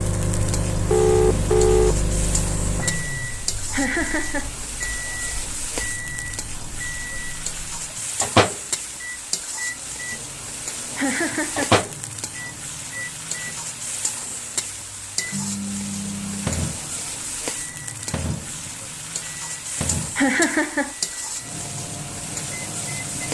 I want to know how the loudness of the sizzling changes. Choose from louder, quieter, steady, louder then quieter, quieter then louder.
steady.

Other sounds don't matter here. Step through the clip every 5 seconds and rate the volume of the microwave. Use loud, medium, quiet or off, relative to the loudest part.
loud, loud, loud, loud, medium.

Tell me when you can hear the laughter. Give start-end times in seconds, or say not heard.
3.7-4.5, 10.9-11.8, 20.1-20.9.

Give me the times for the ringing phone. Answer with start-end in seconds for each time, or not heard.
0.9-1.9.